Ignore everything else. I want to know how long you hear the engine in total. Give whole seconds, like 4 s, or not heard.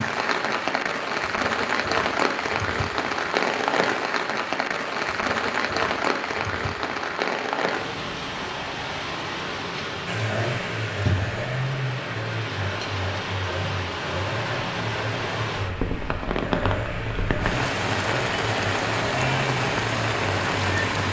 11 s.